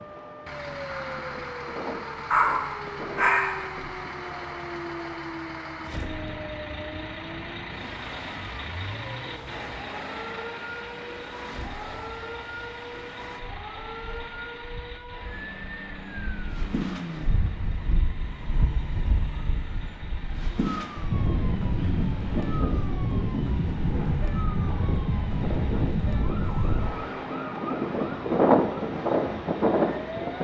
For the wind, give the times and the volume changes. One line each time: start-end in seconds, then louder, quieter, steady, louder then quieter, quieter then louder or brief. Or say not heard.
0.0-30.3 louder.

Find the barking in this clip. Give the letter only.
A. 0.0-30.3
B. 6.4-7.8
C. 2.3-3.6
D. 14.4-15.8
C.